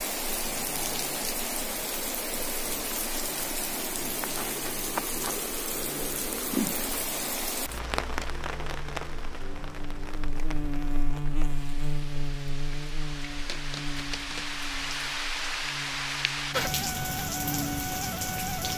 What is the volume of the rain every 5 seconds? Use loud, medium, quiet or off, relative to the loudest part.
loud, loud, medium, loud.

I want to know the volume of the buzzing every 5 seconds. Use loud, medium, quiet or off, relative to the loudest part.
quiet, medium, loud, loud.